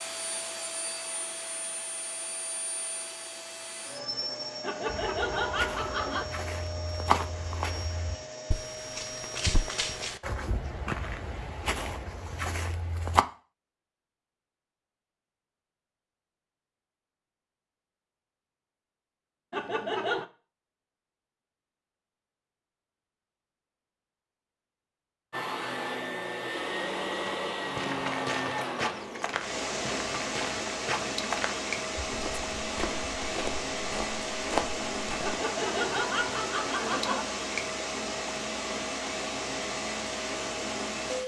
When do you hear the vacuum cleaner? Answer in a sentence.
The vacuum cleaner can be heard from 0.0 to 10.1 s and from 25.3 to 41.2 s.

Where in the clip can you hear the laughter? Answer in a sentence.
The laughter can be heard from 4.6 to 6.2 s, from 19.5 to 20.2 s and from 35.2 to 37.2 s.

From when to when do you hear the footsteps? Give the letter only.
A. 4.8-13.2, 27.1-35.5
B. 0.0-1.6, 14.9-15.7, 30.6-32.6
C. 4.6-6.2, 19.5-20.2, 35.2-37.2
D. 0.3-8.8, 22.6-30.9
A.